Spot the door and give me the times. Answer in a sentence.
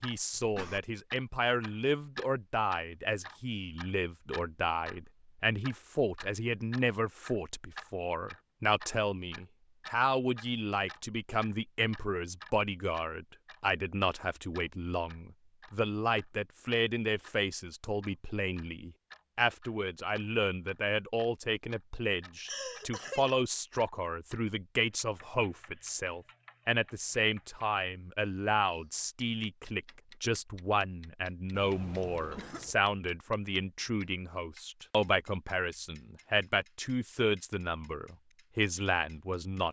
The door can't be heard in this clip.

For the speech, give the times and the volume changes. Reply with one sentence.
You can hear the speech from 0.0 to 39.6 s, at a steady volume.